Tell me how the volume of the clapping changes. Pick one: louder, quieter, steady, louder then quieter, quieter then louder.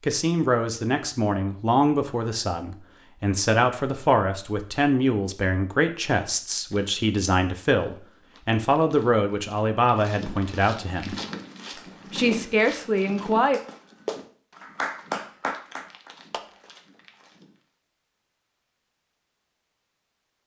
quieter then louder.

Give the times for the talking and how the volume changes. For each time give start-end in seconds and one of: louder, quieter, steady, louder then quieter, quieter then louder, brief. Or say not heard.
0.0-11.2 steady
12.1-13.6 brief.